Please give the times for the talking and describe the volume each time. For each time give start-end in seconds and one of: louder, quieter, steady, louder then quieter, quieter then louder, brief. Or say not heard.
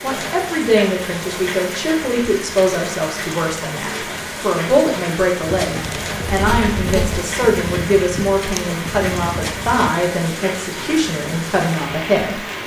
0.0-12.4 steady.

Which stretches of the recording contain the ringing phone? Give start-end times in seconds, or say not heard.
6.2-7.2.